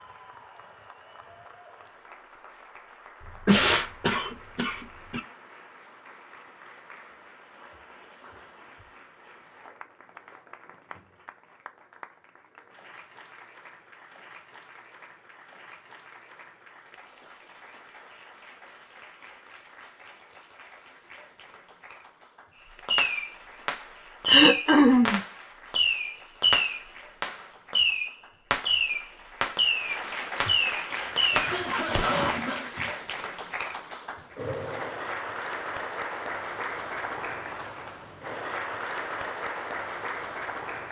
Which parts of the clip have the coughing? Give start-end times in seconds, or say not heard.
3.5-5.2, 24.2-25.2, 30.4-32.9.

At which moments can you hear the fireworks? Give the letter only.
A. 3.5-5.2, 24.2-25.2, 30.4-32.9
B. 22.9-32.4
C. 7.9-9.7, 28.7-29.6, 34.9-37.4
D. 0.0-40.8
B.